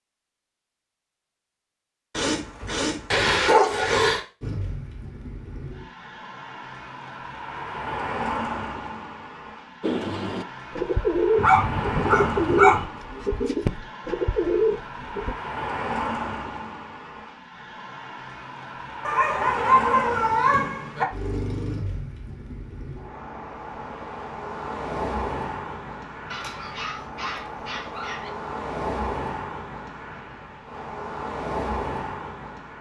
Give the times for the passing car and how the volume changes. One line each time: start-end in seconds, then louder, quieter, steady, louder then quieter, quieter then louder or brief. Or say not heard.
4.4-32.7 steady.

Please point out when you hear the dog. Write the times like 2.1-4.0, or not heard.
2.1-4.2, 11.3-12.8, 19.1-21.1, 26.3-28.3.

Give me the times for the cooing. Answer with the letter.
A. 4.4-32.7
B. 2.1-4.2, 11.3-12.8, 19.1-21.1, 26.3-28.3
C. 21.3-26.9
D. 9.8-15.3
D.